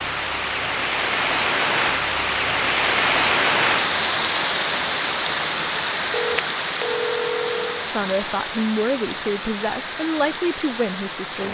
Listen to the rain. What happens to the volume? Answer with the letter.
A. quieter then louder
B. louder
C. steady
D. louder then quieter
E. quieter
E.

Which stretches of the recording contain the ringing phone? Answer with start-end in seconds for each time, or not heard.
6.1-7.9.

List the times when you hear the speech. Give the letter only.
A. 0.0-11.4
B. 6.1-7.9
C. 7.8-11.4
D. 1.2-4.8
C.